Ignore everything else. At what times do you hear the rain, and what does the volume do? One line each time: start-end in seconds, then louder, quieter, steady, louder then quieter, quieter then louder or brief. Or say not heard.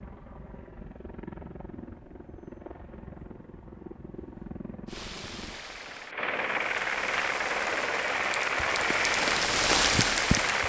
4.8-10.6 louder.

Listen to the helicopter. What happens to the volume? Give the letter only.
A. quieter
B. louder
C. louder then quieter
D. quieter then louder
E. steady
B.